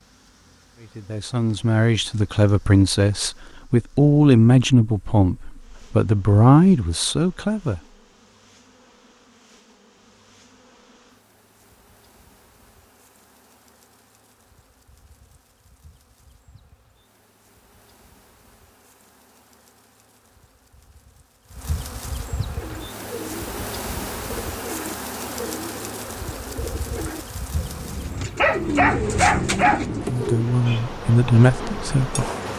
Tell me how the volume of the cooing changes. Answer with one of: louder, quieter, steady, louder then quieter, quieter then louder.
louder.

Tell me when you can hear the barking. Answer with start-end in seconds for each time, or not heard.
28.4-29.9.